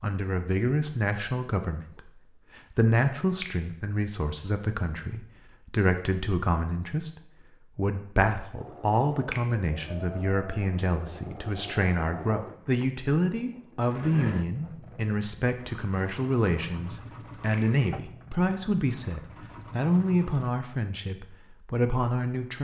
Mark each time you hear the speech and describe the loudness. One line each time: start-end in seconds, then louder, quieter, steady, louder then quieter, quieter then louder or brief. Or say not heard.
0.0-22.5 steady.